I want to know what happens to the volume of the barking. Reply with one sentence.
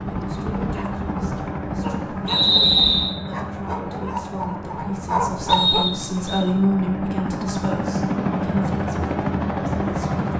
The loudness of the barking goes up.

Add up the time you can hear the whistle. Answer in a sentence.
You can hear the whistle for 2 seconds altogether.